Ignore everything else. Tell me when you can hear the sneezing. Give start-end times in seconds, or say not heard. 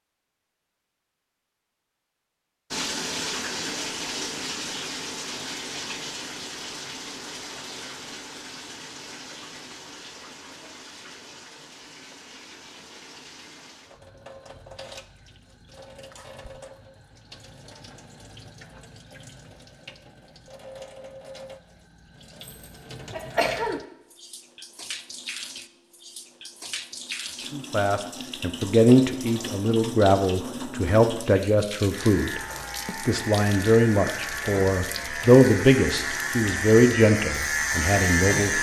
22.4-23.8.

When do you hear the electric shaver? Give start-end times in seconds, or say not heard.
31.9-38.5.